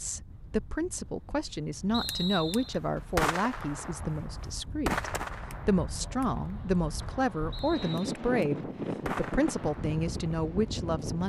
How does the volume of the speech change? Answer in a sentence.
The volume of the speech stays about the same.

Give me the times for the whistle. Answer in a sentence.
The whistle can be heard from 1.9 to 2.8 s and from 7.5 to 8.2 s.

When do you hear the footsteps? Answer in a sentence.
The footsteps can't be heard in this clip.